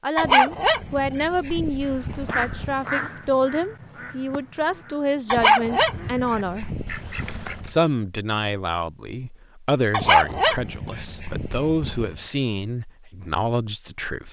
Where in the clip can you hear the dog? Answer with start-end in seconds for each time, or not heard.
0.1-2.8, 5.3-7.7, 9.9-12.1.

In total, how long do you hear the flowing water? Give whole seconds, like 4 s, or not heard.
not heard.